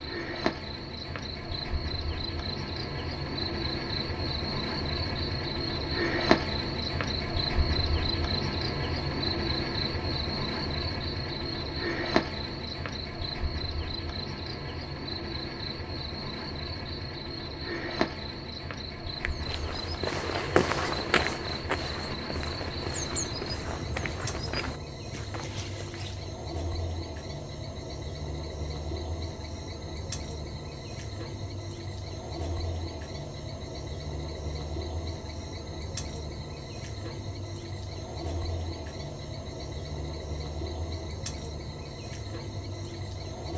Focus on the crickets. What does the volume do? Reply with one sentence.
The loudness of the crickets goes down.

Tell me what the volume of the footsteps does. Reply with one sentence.
The volume of the footsteps goes down.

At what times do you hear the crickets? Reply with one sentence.
You can hear the crickets from 0.0 to 43.5 s.